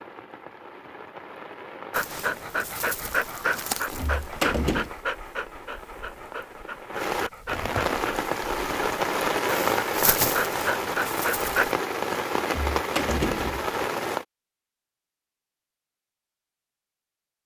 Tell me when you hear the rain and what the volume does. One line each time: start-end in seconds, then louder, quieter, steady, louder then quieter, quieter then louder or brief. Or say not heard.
0.0-14.2 louder.